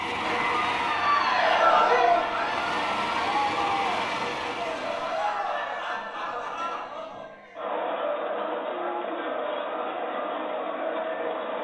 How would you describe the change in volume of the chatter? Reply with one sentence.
The volume of the chatter goes down.